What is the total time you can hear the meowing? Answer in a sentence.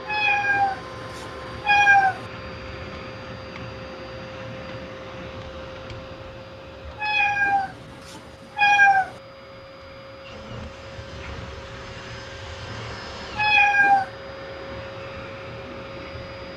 The meowing can be heard for 5 seconds in total.